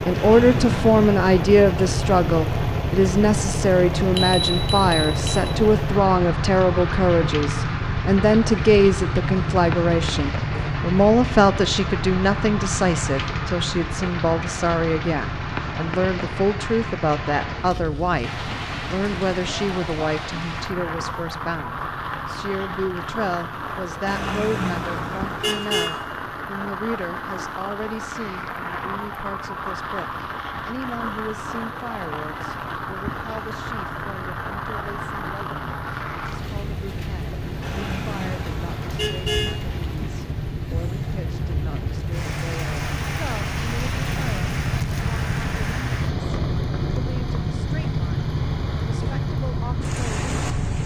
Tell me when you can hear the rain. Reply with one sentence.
You can hear the rain from 0.0 to 50.8 s.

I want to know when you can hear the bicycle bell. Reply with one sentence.
You can hear the bicycle bell from 4.2 to 5.5 s.